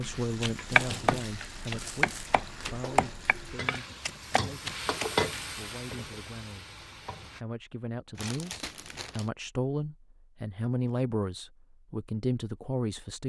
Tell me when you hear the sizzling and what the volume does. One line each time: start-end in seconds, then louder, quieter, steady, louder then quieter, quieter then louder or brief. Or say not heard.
0.0-7.4 louder then quieter.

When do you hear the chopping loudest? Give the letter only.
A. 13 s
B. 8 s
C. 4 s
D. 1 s
D.